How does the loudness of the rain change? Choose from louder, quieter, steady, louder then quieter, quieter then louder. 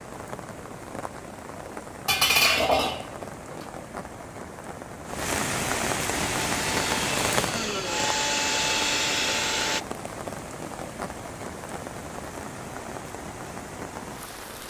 louder then quieter.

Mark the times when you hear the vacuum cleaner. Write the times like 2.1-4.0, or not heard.
6.1-9.8.